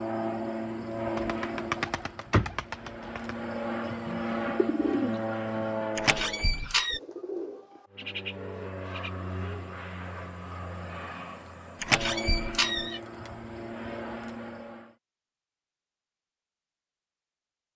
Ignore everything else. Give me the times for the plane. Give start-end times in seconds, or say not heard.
0.0-6.5, 7.9-14.9.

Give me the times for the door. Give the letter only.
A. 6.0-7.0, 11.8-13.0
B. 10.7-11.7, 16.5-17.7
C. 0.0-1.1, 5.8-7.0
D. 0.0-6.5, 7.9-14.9
A.